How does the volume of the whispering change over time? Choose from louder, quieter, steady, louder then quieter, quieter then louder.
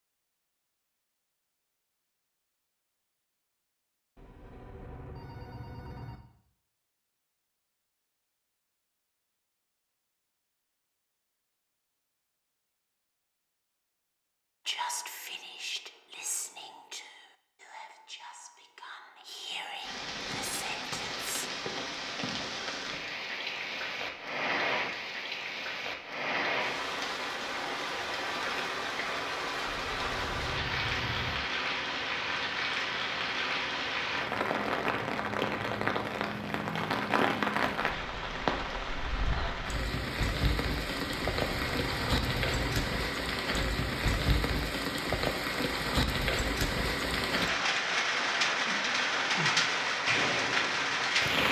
quieter then louder.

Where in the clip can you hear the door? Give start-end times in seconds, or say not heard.
not heard.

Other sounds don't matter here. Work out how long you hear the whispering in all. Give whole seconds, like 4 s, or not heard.
7 s.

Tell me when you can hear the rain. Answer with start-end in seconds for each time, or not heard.
19.8-51.4.